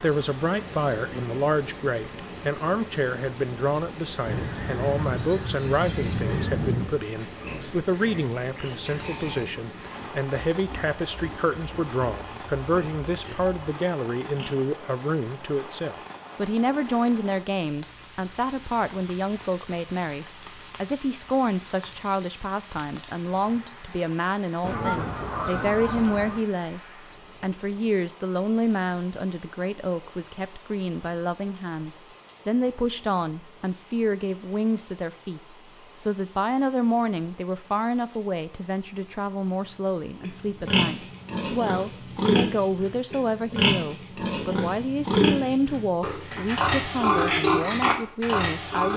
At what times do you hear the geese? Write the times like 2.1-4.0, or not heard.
4.2-7.0, 24.6-26.4.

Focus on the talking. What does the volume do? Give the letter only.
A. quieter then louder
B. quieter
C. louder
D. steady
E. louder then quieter
D.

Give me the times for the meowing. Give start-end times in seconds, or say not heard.
not heard.